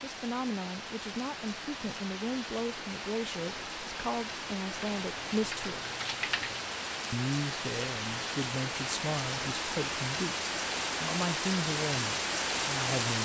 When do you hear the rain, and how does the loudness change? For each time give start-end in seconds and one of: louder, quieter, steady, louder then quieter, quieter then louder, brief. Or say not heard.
0.0-13.2 louder.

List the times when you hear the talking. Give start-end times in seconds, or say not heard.
0.0-5.9, 7.1-13.2.